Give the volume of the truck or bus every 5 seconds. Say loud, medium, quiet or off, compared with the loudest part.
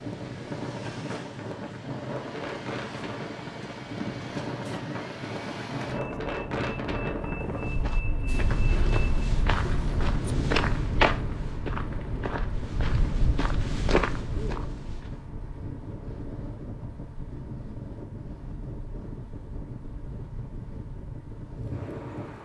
loud, loud, loud, medium, medium.